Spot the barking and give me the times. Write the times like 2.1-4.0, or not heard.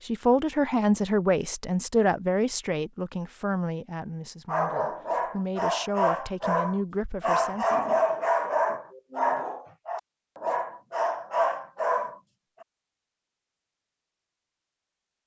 4.5-12.7.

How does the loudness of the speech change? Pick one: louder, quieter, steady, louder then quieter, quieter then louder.
quieter.